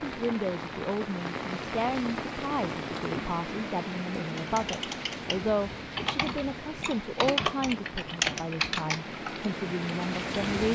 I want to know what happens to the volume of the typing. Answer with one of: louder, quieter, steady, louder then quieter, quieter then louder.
louder.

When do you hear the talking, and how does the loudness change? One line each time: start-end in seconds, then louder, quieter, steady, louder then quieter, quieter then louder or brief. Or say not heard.
0.0-10.7 steady.